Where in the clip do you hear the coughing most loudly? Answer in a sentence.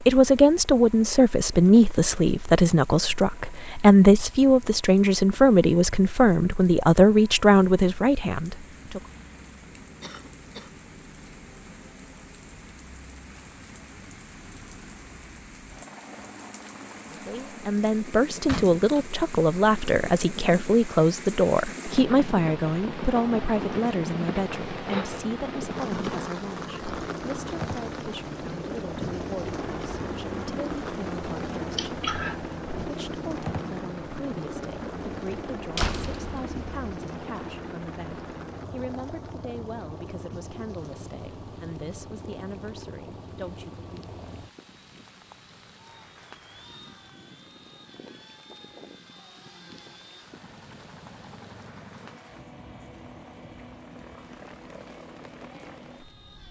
The loudest moment of the coughing is at 32 seconds.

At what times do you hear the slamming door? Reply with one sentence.
The slamming door can be heard from 18.4 to 19.1 s and from 35.8 to 36.7 s.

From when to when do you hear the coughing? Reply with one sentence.
The coughing can be heard from 10.0 to 10.7 s and from 31.8 to 32.4 s.